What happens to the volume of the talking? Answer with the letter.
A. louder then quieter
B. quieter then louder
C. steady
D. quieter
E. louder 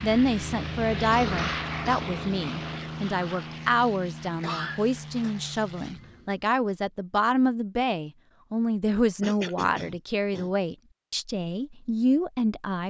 C.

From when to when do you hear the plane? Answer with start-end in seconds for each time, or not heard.
0.0-6.5.